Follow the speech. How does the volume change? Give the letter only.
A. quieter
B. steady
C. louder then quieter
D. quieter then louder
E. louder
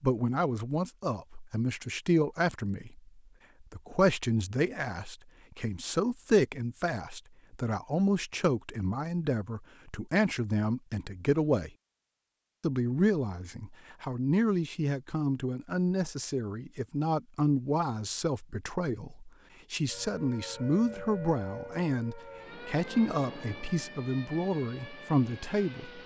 B.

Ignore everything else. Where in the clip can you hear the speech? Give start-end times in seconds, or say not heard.
0.0-11.7, 12.6-26.0.